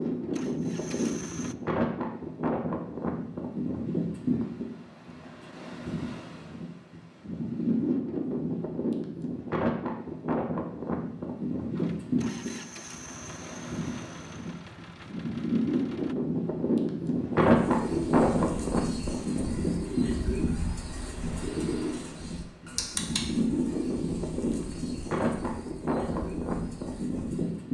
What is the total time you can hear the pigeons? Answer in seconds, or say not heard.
10 s.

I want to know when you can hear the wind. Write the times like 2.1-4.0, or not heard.
0.0-27.7.